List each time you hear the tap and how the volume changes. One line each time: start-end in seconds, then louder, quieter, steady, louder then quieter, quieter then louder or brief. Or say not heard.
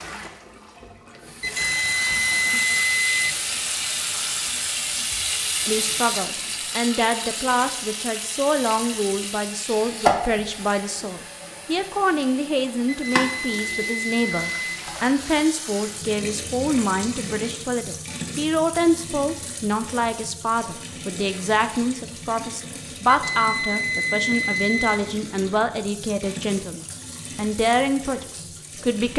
0.0-29.1 quieter.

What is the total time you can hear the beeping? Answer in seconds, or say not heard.
6 s.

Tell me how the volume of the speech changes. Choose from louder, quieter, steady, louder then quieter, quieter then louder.
steady.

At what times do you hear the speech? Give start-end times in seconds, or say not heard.
5.7-29.1.